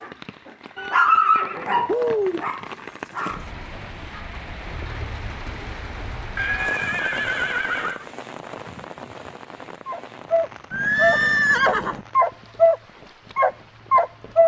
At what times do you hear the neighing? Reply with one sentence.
The neighing can be heard from 0.8 to 2.5 s, from 6.3 to 8.1 s and from 10.7 to 12.0 s.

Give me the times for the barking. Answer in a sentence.
The barking can be heard from 0.0 to 3.5 s, from 9.8 to 12.8 s and from 13.3 to 14.4 s.